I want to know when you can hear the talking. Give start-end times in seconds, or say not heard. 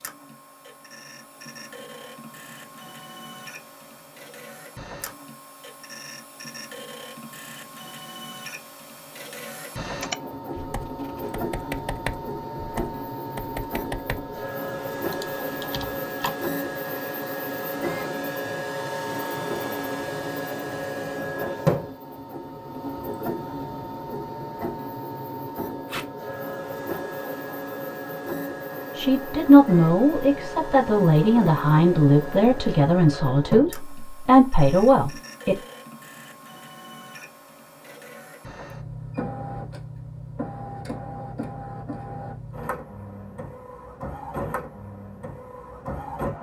28.9-35.5.